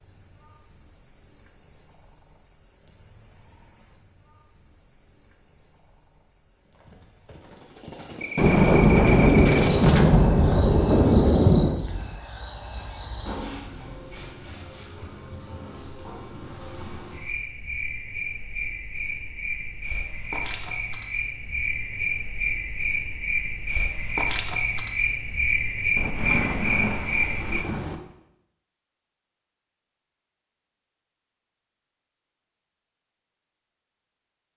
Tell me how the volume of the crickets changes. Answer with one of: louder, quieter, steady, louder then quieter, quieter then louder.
quieter then louder.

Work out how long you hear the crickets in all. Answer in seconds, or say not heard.
28 s.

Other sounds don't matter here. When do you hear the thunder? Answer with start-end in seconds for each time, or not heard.
8.3-11.8, 25.9-28.0.